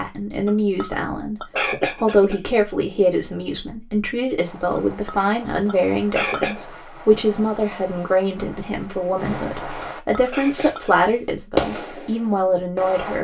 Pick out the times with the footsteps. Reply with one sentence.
The footsteps can't be heard in this clip.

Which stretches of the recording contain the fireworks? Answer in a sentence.
You can hear the fireworks from 4.3 to 13.2 s.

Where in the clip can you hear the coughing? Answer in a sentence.
The coughing can be heard from 1.5 to 2.5 s, from 6.1 to 6.7 s and from 10.3 to 10.9 s.